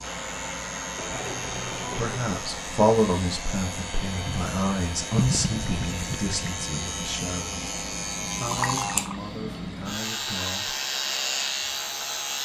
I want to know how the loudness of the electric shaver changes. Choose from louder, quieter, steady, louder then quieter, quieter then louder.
louder.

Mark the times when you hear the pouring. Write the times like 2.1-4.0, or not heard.
0.9-2.2, 5.2-6.4, 8.4-9.2.